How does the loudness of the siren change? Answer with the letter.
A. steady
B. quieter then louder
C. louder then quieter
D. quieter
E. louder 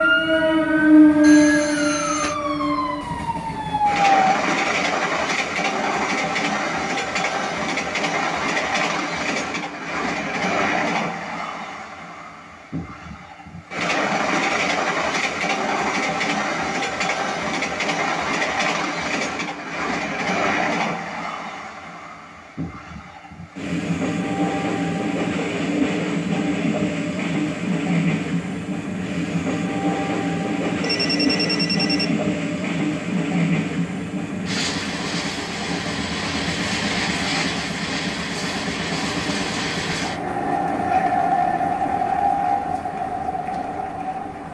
A.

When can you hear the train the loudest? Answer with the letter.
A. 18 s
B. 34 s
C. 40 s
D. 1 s
D.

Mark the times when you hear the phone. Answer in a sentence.
The phone can be heard from 1.2 to 2.4 s and from 30.8 to 32.1 s.